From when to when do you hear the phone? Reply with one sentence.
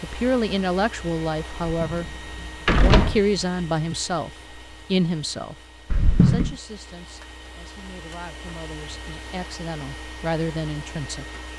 You can't hear the phone here.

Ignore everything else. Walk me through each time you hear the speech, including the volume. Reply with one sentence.
You can hear the speech briefly from 0.0 to 2.1 s; briefly from 2.8 to 5.5 s; and from 6.2 to 11.2 s, getting louder.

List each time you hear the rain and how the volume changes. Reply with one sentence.
You can't hear the rain here.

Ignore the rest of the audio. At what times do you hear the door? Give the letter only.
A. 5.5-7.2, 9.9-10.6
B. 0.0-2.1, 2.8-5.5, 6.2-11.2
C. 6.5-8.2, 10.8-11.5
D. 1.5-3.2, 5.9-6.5
D.